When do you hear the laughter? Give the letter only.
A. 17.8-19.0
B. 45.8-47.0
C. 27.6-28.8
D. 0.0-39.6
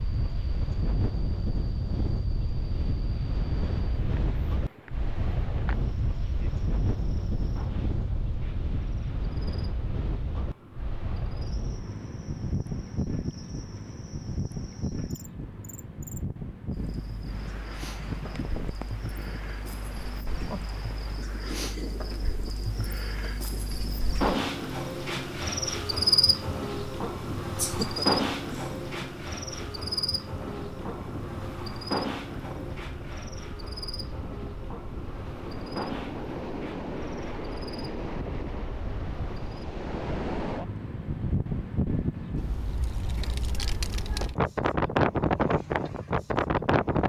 C.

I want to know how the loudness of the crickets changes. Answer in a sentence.
The loudness of the crickets goes up, then down.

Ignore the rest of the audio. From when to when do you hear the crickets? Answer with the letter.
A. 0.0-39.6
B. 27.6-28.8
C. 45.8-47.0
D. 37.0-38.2
A.